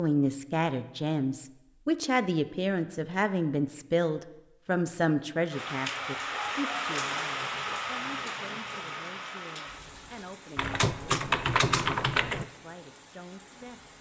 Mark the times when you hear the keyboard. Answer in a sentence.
You can hear the keyboard from 10.6 to 12.4 s.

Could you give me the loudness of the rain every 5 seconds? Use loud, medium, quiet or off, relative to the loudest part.
off, loud, quiet.